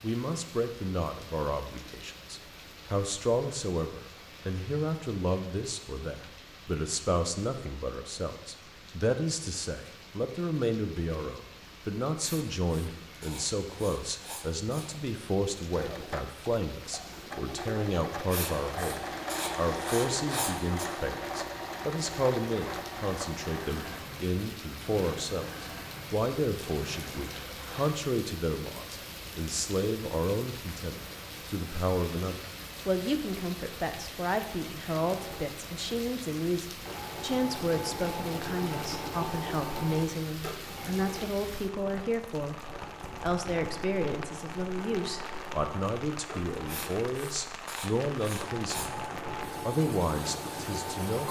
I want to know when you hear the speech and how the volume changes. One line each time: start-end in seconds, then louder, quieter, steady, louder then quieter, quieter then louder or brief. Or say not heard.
0.0-51.2 steady.